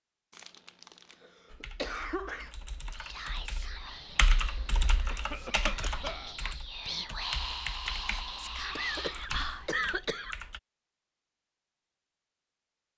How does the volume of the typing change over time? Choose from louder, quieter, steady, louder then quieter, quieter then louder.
louder then quieter.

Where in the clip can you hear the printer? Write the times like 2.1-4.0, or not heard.
not heard.